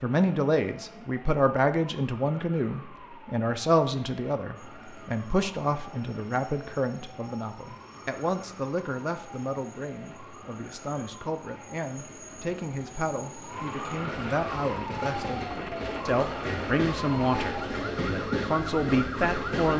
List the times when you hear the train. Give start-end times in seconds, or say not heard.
4.5-19.7.